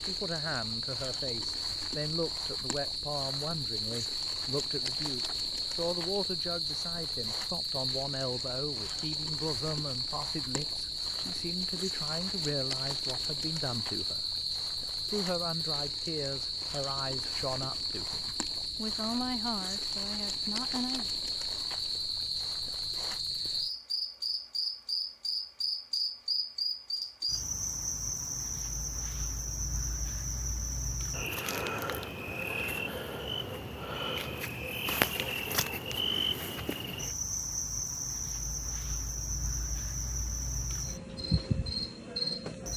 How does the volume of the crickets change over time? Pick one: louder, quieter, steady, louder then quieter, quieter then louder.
steady.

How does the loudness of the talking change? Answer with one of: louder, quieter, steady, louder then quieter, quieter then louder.
steady.